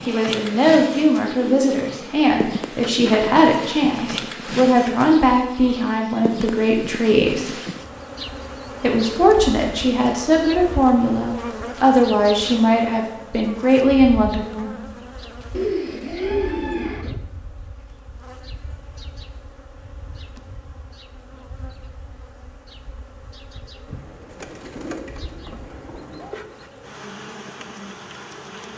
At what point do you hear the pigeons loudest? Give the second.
16 s.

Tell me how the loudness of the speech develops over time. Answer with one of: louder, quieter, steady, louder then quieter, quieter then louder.
steady.